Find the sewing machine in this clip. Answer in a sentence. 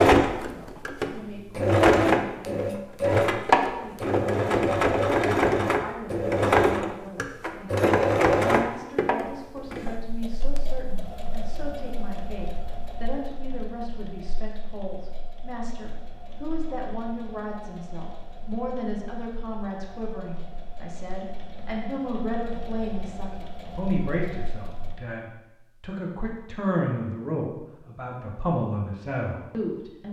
The sewing machine can be heard from 0.0 to 25.0 s.